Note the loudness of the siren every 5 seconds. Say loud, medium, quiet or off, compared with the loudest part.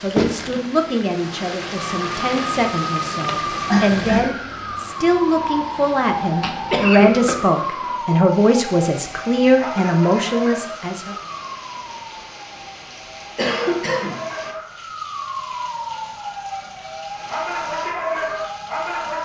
loud, loud, medium, loud.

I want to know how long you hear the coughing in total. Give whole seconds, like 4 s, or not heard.
3 s.